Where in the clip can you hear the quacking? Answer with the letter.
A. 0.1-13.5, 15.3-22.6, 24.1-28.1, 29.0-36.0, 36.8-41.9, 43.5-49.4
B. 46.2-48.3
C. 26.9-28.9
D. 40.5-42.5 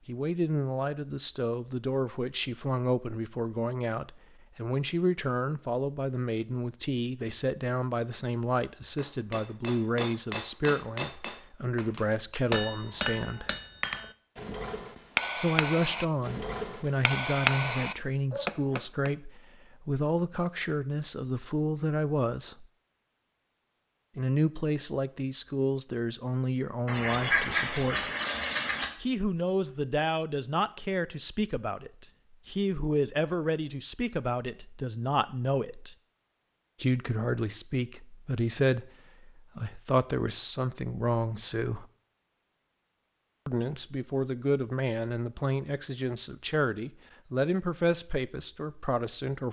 C.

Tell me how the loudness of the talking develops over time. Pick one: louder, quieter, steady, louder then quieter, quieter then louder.
steady.